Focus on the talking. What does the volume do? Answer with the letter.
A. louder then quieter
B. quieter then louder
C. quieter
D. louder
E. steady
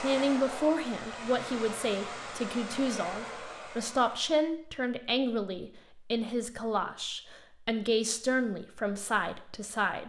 E.